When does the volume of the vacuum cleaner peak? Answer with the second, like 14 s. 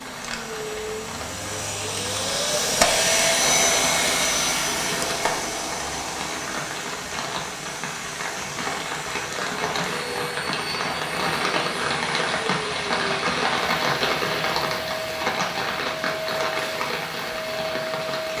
3 s.